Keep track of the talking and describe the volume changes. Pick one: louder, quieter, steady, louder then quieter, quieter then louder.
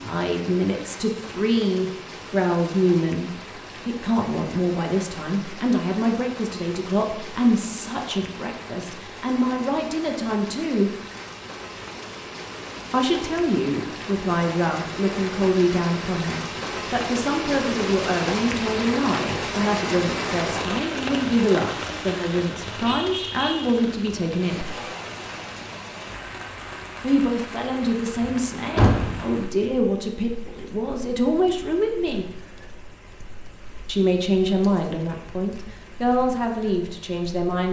steady.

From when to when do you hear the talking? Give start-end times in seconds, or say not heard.
0.0-10.9, 12.9-24.6, 27.0-32.4, 33.9-37.6.